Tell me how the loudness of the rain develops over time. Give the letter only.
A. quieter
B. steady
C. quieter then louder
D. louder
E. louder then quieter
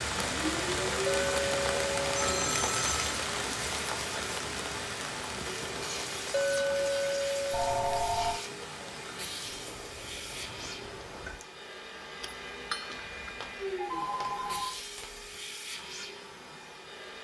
A.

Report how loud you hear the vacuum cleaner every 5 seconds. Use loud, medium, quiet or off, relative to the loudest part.
loud, loud, loud, medium.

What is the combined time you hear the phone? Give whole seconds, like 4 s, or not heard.
4 s.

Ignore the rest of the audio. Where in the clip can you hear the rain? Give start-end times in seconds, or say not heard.
0.0-11.4.